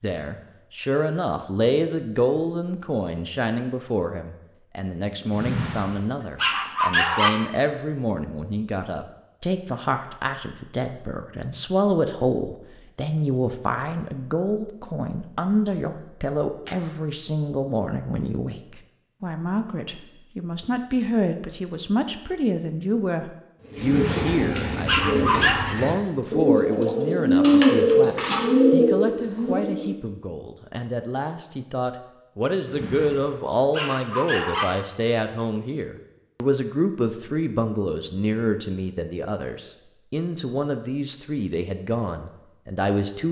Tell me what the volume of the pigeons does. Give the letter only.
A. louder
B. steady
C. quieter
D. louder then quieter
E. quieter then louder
A.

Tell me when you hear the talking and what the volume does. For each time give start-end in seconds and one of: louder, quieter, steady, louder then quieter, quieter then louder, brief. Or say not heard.
0.0-43.2 steady.